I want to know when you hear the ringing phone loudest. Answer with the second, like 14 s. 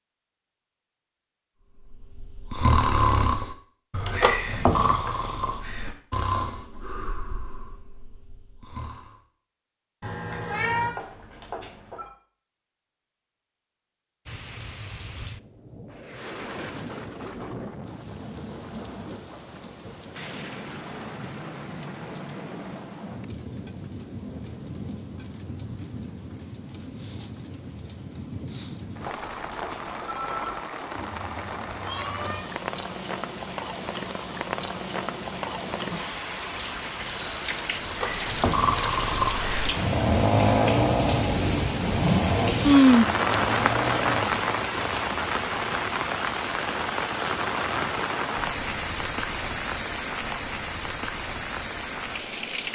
30 s.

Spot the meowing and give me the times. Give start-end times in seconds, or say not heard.
10.0-10.9, 30.9-32.5.